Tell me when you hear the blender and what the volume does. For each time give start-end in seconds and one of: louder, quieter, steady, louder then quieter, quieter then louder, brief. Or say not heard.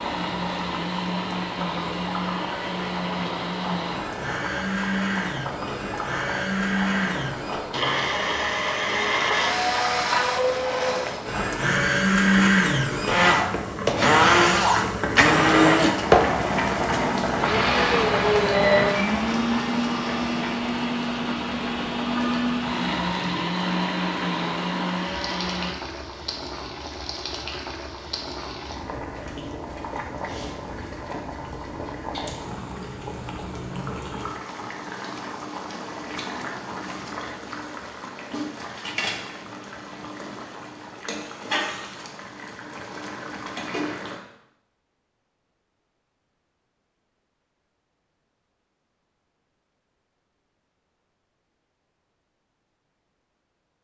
0.0-25.7 louder then quieter.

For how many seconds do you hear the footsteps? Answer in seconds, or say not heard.
not heard.